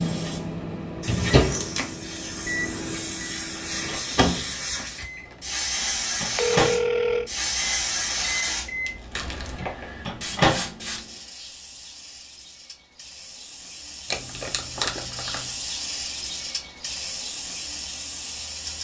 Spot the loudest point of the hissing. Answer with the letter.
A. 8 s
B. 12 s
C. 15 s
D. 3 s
A.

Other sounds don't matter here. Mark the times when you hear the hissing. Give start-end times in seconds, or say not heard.
0.0-18.7.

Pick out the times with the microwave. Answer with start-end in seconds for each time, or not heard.
0.0-10.8.